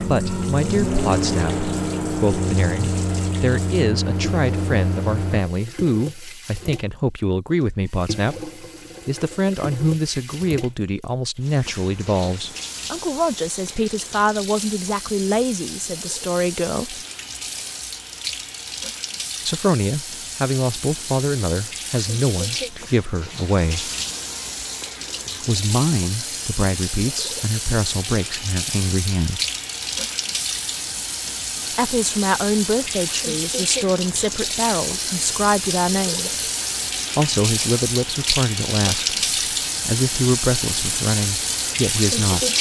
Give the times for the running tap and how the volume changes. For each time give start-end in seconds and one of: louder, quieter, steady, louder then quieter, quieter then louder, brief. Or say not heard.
0.0-42.5 louder.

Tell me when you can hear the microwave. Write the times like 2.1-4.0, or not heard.
0.0-5.4.